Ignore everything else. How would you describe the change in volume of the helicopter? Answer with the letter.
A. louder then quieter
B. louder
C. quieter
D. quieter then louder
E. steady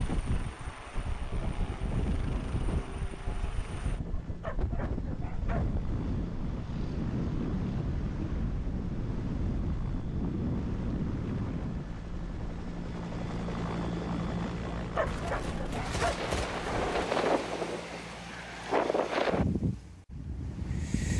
A.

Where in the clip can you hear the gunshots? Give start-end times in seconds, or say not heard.
15.1-17.1.